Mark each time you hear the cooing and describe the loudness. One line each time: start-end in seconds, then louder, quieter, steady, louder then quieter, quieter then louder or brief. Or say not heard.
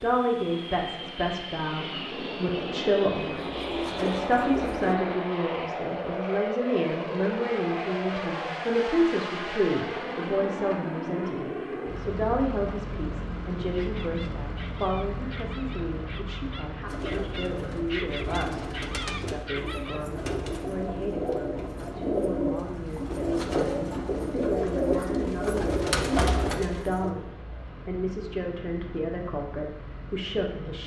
3.3-5.0 brief
16.9-27.1 louder.